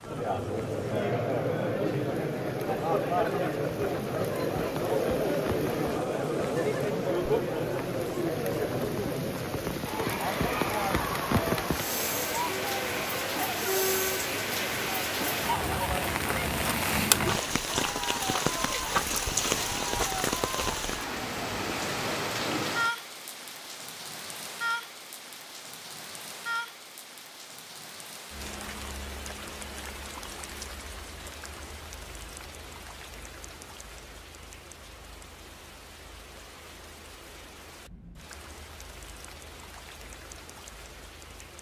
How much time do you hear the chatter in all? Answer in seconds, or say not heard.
23 s.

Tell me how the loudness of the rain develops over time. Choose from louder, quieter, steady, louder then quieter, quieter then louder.
louder then quieter.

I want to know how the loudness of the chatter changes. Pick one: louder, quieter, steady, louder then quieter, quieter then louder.
quieter.